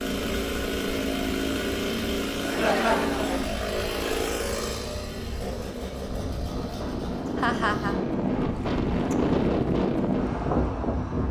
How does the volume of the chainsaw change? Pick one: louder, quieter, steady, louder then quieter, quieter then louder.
quieter.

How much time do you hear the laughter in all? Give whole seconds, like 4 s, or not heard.
2 s.